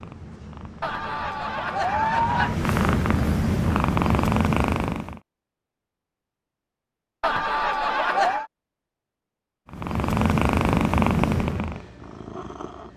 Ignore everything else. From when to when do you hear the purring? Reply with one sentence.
The purring can be heard from 0.0 to 5.2 s and from 9.7 to 12.9 s.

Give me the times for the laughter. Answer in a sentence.
The laughter can be heard from 0.8 to 2.5 s and from 7.2 to 8.5 s.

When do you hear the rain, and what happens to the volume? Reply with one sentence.
The rain can't be heard in this clip.